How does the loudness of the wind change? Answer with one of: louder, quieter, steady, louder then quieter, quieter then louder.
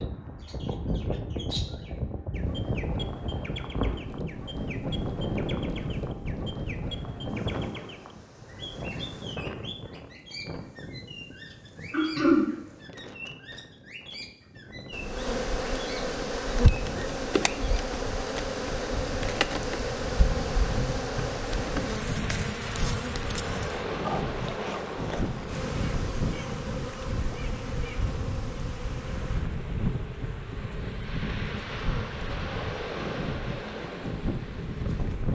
quieter then louder.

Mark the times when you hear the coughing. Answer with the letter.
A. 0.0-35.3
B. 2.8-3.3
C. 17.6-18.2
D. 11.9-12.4
D.